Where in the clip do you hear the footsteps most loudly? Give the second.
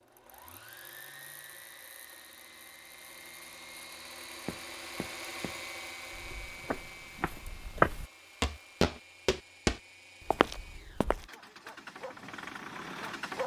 8 s.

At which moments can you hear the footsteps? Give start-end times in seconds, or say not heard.
4.5-11.2.